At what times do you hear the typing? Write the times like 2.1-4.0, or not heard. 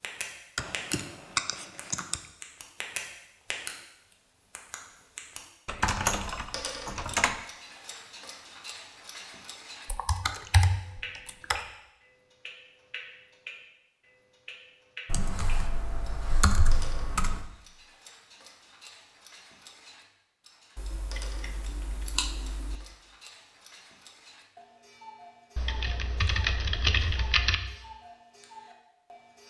0.6-2.2, 5.7-7.3, 9.8-11.6, 15.1-17.4, 20.8-22.8, 25.6-27.6.